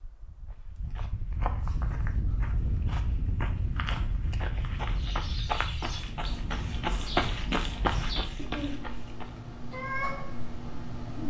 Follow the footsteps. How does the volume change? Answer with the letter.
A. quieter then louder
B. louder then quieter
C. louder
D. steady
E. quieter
C.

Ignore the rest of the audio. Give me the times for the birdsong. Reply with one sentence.
The birdsong can be heard from 4.8 to 11.2 s.